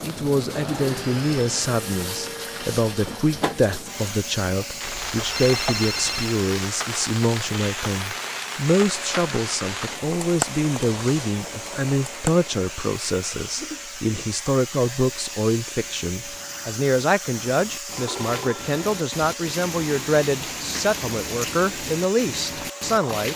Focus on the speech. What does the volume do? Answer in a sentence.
The volume of the speech stays about the same.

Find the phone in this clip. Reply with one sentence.
You can hear the phone from 4.8 to 6.4 s and from 17.9 to 18.8 s.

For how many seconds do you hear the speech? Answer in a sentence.
The speech can be heard for 23 seconds in total.